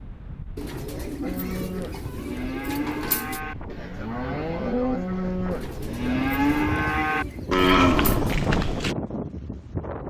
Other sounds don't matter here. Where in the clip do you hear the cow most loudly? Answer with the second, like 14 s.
8 s.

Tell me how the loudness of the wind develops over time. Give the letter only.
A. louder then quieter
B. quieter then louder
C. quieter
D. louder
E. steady
D.